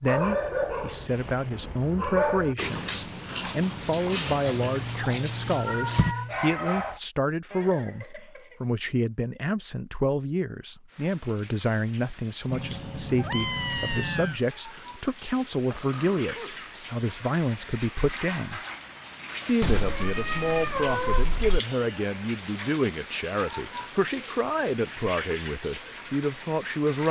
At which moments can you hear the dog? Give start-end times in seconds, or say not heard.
0.1-7.0.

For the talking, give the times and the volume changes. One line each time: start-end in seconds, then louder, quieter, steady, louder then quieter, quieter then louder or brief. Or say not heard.
0.0-18.6 steady
19.4-27.0 steady.